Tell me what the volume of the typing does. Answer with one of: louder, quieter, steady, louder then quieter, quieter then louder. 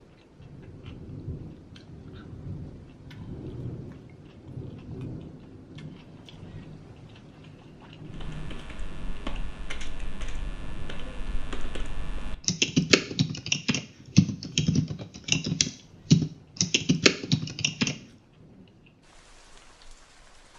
louder.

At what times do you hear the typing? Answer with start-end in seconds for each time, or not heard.
8.1-17.9.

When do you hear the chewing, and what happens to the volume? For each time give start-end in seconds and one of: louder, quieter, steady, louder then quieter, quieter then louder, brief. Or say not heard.
not heard.